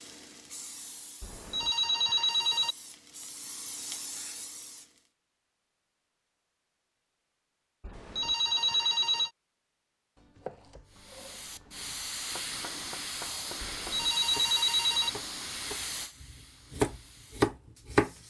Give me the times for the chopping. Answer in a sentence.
The chopping can be heard from 10.2 to 18.1 s.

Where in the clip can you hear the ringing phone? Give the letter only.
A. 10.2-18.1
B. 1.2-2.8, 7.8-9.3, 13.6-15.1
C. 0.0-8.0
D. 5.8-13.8
B.